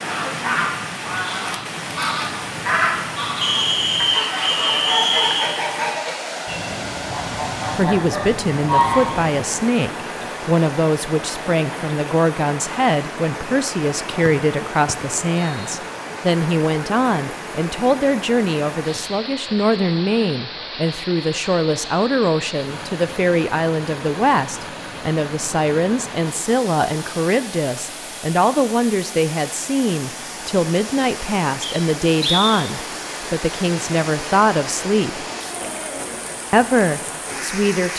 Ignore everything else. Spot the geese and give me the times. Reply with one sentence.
You can hear the geese from 0.0 to 9.4 s.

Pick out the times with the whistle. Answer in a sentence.
You can hear the whistle from 3.4 to 5.7 s, from 14.2 to 15.8 s and from 31.6 to 32.6 s.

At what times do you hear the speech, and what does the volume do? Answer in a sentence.
You can hear the speech from 7.2 to 35.2 s, at a steady volume; and briefly from 36.5 to 37.9 s.